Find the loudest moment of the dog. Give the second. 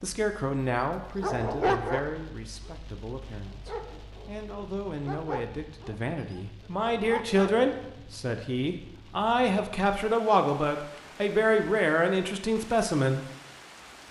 2 s.